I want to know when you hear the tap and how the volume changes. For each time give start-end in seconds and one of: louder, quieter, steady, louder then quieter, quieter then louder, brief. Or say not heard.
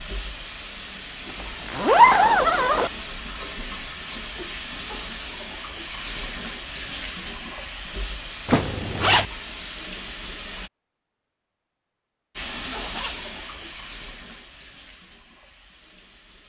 0.0-10.7 steady
12.3-16.4 quieter.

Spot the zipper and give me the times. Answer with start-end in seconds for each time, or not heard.
1.2-2.9, 8.4-9.2, 12.3-13.3.